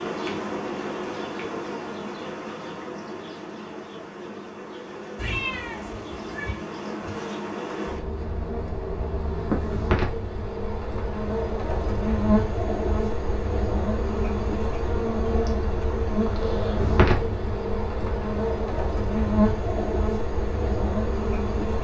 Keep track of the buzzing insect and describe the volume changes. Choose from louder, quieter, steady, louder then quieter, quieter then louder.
louder.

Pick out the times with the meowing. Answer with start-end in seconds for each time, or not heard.
5.2-6.6.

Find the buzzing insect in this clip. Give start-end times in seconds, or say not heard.
0.0-21.7.